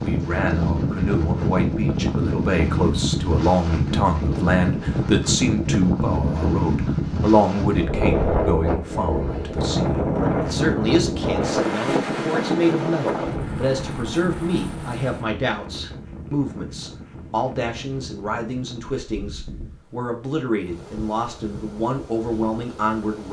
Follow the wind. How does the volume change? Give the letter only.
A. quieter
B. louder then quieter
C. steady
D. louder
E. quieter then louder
A.